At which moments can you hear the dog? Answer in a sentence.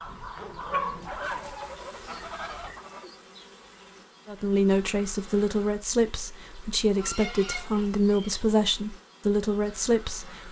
The dog can be heard from 0.0 to 2.9 s.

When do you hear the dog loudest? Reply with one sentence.
The volume of the dog peaks at 1 second.